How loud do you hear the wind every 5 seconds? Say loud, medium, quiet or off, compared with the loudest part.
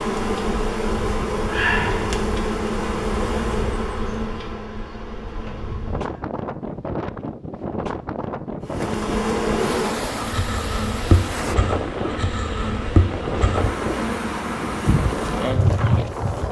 medium, loud, loud, loud.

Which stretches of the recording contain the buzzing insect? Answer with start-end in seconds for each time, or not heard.
0.0-6.2, 8.7-16.4.